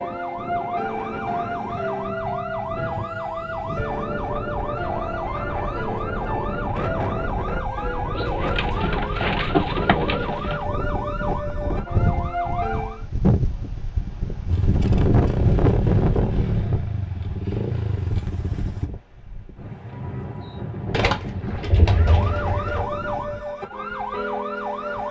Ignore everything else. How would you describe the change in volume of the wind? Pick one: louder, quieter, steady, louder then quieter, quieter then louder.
louder then quieter.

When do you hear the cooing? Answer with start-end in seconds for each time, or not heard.
8.2-10.7, 20.9-22.9.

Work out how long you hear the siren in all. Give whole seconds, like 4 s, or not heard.
16 s.